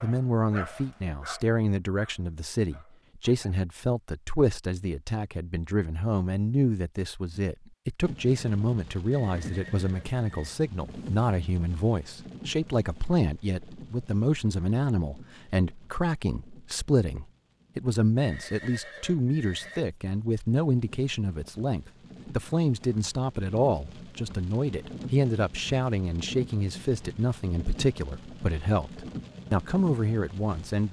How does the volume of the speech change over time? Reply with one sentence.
The volume of the speech stays about the same.